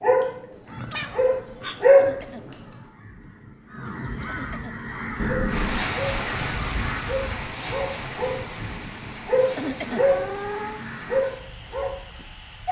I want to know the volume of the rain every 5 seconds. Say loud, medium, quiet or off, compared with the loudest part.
off, loud, medium.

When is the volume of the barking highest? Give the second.
2 s.